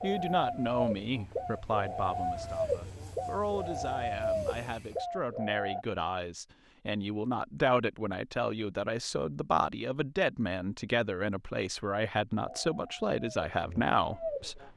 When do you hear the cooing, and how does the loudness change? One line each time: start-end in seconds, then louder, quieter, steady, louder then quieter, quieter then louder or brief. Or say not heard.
0.0-5.8 steady
12.4-14.7 brief.